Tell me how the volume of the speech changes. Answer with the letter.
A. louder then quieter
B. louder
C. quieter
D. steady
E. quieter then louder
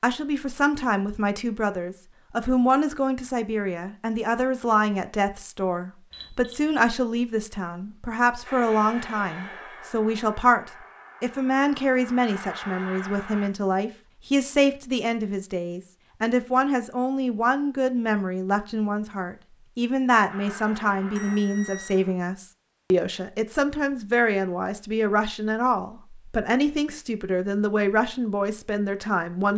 D.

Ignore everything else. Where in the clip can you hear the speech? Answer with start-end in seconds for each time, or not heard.
0.0-29.5.